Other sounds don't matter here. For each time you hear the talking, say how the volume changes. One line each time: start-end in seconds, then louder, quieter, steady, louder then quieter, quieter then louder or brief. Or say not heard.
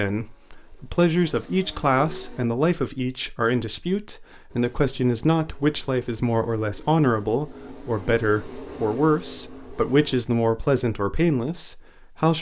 0.0-12.3 steady.